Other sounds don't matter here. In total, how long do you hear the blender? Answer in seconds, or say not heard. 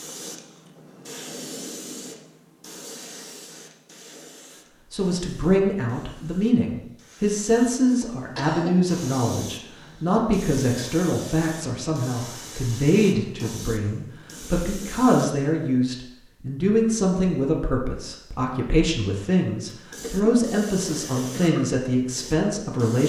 not heard.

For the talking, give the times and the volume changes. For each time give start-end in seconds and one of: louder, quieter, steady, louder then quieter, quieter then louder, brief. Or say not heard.
4.9-23.0 steady.